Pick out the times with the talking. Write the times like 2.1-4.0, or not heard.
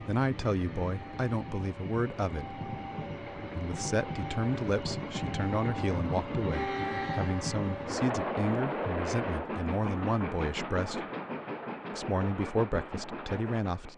0.0-2.6, 3.4-11.1, 11.9-13.9.